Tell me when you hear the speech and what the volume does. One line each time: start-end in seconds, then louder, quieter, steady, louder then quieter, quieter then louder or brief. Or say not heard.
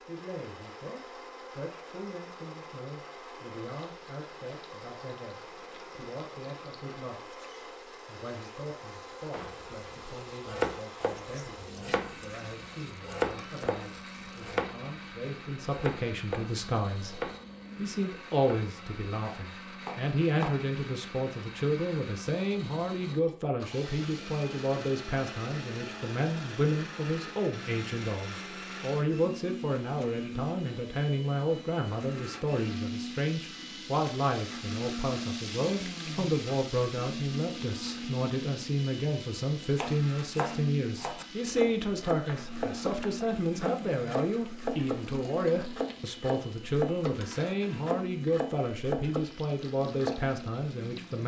0.1-51.2 louder.